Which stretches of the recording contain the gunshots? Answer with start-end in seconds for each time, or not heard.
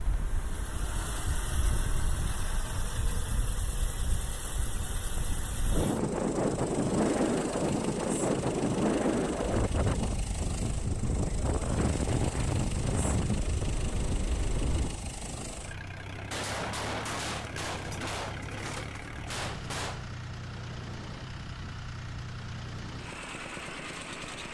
16.3-20.1.